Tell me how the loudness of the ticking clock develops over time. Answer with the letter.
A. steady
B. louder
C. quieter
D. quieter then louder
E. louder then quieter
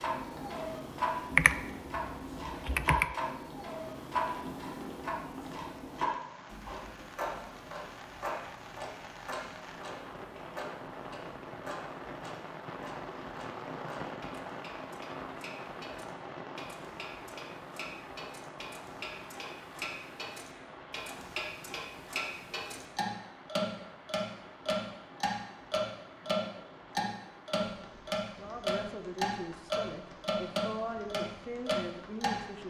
D.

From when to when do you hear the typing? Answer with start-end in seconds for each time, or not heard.
1.3-3.1.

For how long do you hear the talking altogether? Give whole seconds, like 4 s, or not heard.
4 s.